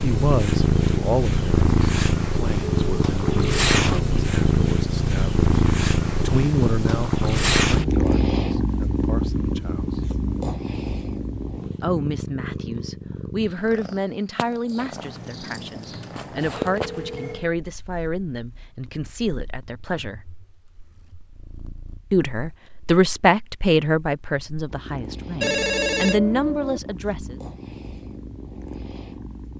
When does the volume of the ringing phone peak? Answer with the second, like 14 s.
26 s.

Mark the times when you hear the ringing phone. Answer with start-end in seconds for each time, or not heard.
2.6-3.5, 14.9-17.5, 25.4-26.8.